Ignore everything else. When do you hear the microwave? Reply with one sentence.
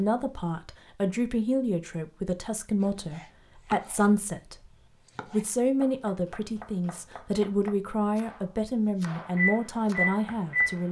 The microwave can be heard from 9.2 to 10.8 s.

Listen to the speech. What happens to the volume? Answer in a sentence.
The volume of the speech stays about the same.